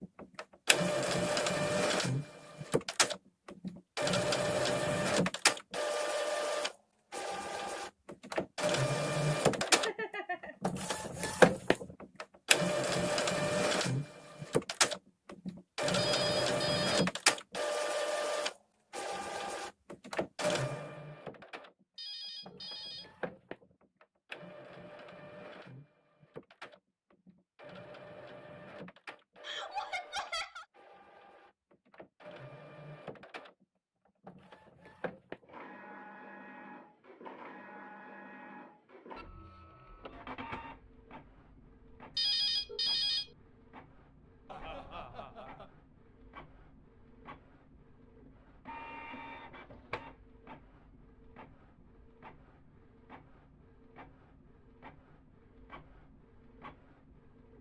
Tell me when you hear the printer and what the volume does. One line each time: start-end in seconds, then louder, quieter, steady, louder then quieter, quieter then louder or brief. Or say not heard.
0.0-57.5 quieter.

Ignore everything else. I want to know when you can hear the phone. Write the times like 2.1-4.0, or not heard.
15.9-17.1, 21.9-23.1, 42.1-43.3.